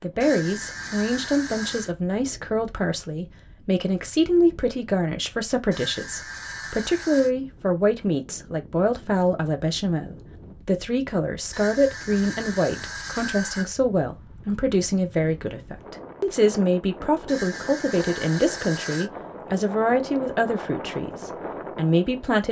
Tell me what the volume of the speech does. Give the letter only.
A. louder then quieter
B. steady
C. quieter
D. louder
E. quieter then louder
B.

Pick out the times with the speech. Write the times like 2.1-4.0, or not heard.
0.0-22.4.